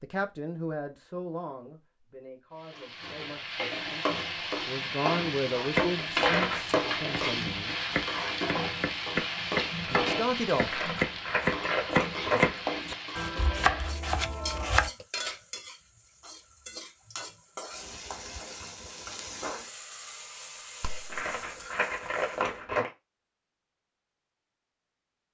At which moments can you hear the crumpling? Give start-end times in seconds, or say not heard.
6.2-6.8, 10.7-12.6, 21.1-22.9.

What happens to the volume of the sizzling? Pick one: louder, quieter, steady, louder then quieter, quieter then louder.
quieter.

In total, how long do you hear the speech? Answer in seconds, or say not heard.
9 s.